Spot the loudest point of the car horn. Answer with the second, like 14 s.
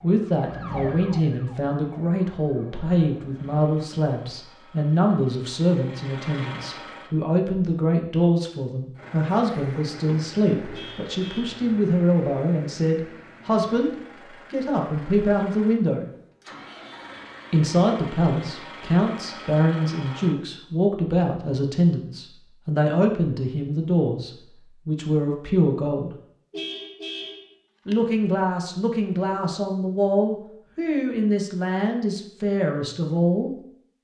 27 s.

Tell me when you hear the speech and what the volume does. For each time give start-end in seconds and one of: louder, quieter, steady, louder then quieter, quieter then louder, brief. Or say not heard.
0.0-13.9 steady
14.5-16.1 brief
17.5-26.1 steady
27.9-33.5 steady.